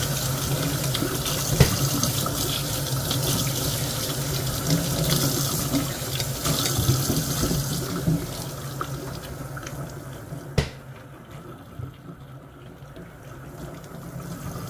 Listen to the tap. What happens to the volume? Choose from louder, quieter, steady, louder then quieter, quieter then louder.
quieter.